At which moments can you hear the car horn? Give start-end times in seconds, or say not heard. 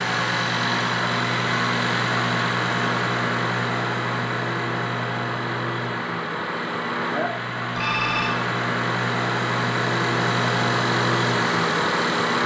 not heard.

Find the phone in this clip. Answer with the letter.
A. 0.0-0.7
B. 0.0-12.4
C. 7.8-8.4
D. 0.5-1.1
C.